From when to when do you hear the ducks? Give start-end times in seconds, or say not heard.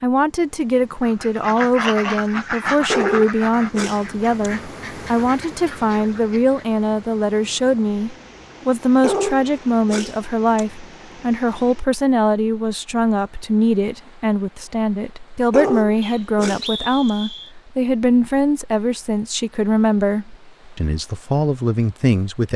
1.0-6.6.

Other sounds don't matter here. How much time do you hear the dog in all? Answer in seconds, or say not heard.
5 s.